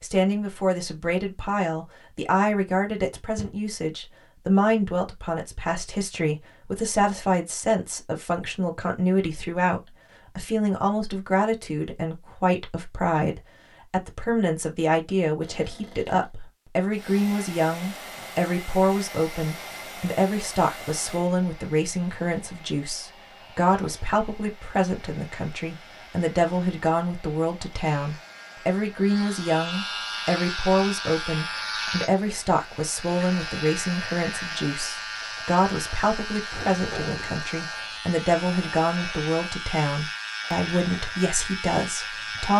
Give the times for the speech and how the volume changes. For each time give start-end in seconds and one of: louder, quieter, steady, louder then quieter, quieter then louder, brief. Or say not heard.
0.0-42.5 steady.